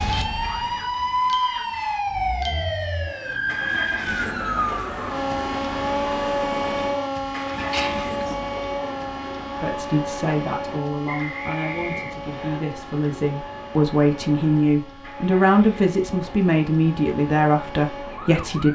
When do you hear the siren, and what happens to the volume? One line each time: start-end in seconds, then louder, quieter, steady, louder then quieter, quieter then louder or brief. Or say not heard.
0.0-18.7 quieter.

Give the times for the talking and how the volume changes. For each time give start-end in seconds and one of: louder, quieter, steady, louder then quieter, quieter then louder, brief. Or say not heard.
9.6-18.7 louder.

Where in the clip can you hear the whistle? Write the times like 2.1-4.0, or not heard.
11.1-12.6.